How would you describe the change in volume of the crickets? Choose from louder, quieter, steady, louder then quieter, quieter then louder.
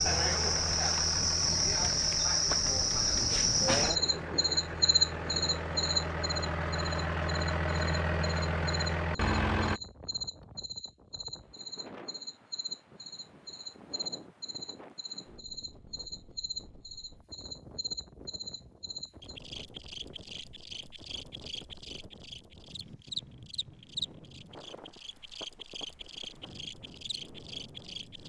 quieter.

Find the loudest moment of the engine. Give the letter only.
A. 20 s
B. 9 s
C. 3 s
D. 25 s
B.